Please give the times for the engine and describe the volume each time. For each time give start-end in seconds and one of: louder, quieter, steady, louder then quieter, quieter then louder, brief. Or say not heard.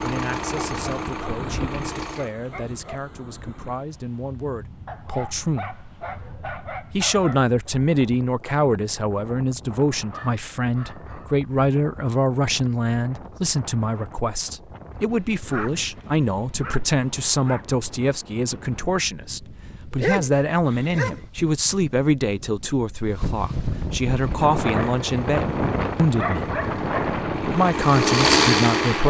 0.0-2.3 brief
24.1-29.0 louder.